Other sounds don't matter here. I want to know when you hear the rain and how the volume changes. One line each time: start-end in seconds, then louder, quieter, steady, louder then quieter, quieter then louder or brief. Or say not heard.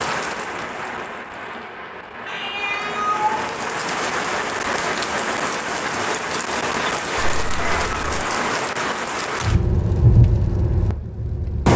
0.0-11.7 louder.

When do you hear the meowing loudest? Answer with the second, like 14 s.
3 s.